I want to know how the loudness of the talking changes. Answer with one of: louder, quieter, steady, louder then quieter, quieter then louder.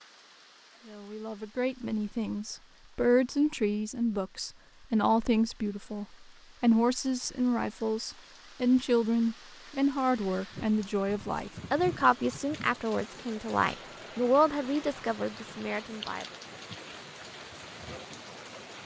steady.